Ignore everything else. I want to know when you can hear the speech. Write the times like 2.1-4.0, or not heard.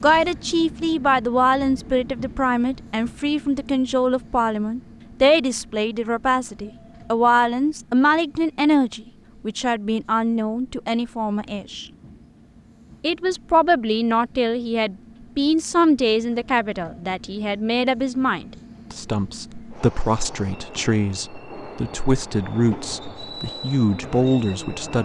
0.0-11.8, 13.0-25.0.